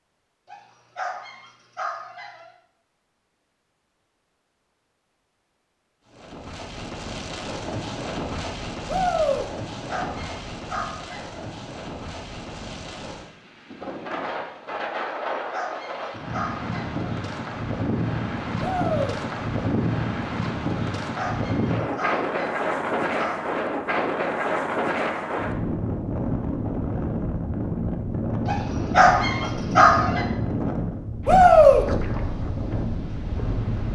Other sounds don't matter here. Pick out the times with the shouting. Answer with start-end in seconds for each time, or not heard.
8.8-9.4, 18.6-19.2, 31.2-31.9.